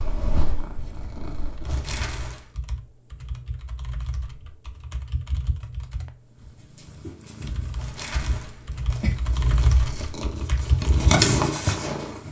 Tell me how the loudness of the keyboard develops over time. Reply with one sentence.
The volume of the keyboard goes up.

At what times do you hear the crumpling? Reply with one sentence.
You can hear the crumpling from 1.6 to 2.5 s and from 7.8 to 10.3 s.